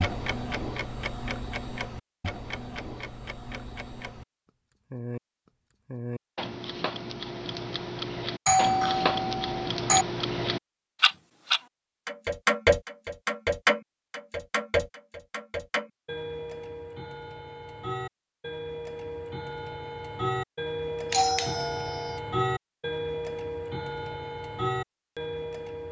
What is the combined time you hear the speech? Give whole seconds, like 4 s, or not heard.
not heard.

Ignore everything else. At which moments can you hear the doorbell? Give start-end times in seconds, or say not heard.
8.4-10.1, 21.1-22.2.